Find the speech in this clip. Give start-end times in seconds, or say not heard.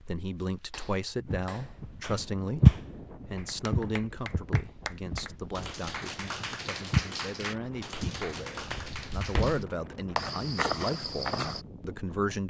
0.1-12.4.